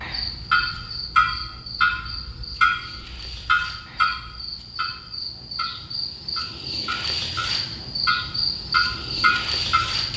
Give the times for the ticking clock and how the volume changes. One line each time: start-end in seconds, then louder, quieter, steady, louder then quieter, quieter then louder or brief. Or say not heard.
0.0-10.1 quieter then louder.